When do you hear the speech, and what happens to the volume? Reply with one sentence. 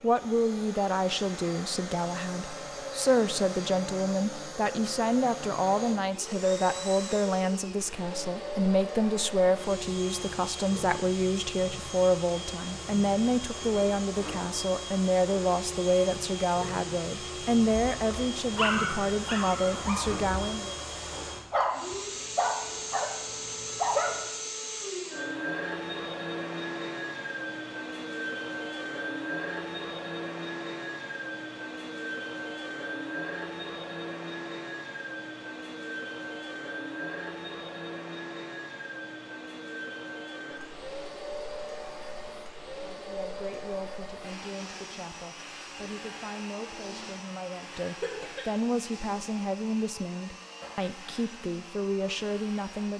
You can hear the speech from 0.0 to 20.8 s, at a steady volume; and from 42.8 to 52.9 s, getting louder.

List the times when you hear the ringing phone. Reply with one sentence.
The ringing phone can't be heard in this clip.